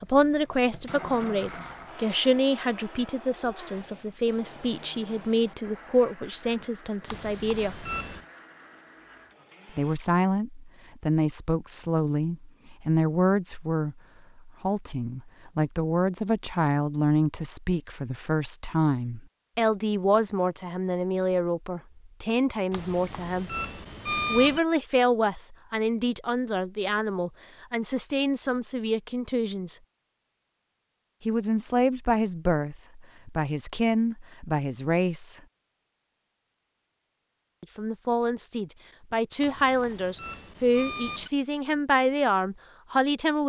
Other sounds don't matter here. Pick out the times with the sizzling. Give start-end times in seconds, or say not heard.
not heard.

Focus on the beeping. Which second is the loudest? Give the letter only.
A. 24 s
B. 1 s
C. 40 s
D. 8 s
A.